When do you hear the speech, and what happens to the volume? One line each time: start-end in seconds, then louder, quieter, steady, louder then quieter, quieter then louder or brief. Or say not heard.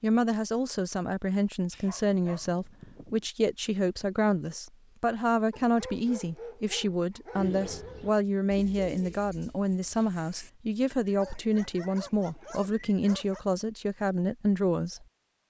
0.0-15.1 steady.